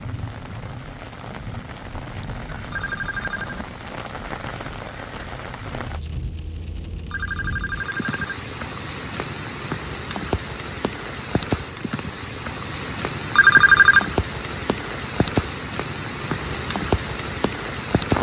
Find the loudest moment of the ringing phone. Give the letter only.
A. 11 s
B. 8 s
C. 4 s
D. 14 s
D.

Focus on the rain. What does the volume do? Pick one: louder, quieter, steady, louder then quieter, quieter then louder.
louder.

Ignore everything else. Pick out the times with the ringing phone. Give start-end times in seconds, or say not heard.
2.7-3.6, 7.1-8.4, 13.3-14.1.